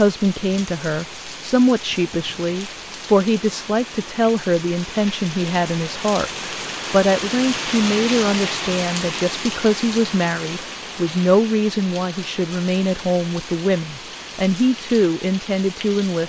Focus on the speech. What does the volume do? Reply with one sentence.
The loudness of the speech stays about the same.